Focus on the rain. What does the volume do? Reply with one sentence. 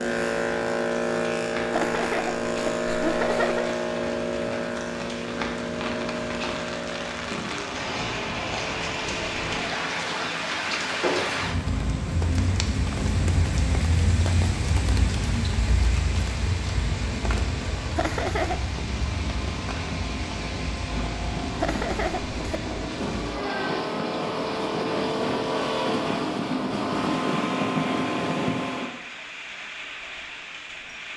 The volume of the rain goes up, then down.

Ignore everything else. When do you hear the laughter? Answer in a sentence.
You can hear the laughter from 1.7 to 3.8 s, from 17.9 to 18.7 s and from 21.6 to 22.6 s.